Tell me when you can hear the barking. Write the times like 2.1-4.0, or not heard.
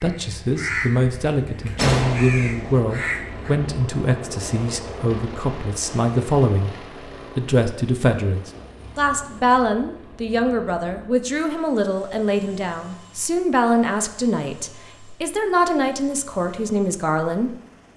not heard.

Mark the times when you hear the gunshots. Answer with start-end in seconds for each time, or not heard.
1.8-2.9.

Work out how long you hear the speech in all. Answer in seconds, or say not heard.
17 s.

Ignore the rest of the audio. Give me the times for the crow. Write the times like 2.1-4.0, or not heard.
0.0-3.5.